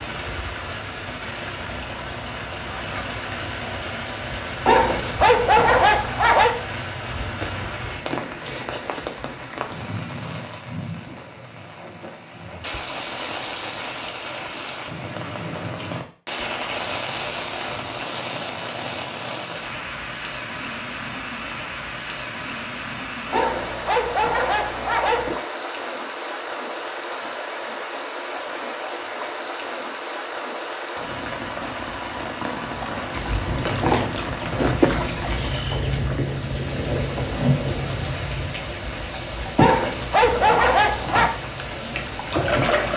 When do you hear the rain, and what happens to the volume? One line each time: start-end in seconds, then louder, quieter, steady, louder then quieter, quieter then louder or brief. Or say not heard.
0.0-42.9 steady.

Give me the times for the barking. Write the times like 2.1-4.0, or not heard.
4.7-6.5, 23.3-25.4, 39.5-41.3.